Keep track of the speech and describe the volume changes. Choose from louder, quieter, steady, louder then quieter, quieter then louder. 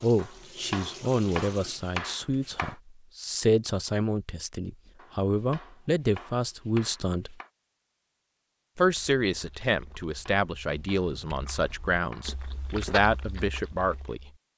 steady.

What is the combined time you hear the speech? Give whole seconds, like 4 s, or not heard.
13 s.